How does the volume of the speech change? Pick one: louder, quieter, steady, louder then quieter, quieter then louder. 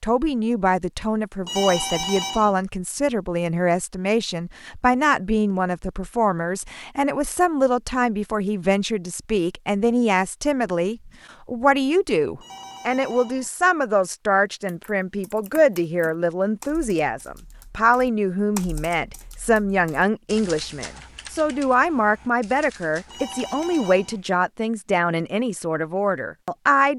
steady.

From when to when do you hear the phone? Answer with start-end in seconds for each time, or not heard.
1.4-2.5, 12.3-13.5, 23.1-24.2.